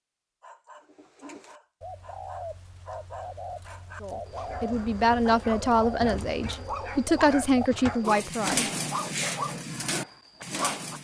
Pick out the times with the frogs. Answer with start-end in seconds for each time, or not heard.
not heard.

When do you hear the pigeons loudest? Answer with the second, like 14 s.
9 s.